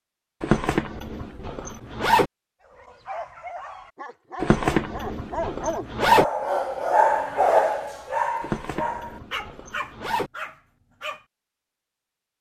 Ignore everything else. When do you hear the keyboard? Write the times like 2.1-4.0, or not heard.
not heard.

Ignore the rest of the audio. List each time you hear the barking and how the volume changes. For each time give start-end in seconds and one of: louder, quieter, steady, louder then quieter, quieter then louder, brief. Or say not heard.
2.6-11.2 louder then quieter.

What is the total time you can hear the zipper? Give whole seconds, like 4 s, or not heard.
6 s.